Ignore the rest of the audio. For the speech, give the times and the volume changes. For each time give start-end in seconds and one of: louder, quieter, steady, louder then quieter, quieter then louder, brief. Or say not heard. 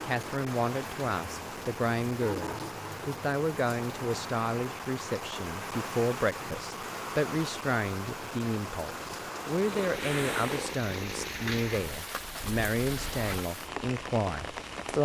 0.0-14.9 steady.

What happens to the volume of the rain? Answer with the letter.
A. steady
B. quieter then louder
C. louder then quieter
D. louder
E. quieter
A.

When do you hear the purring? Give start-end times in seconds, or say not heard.
9.6-13.4.